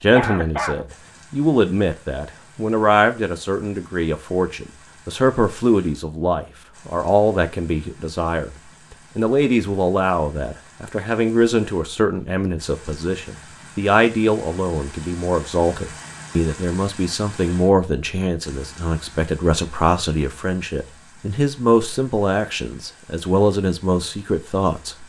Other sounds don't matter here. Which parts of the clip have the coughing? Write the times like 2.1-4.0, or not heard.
0.1-0.8.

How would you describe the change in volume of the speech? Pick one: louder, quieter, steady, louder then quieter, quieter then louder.
steady.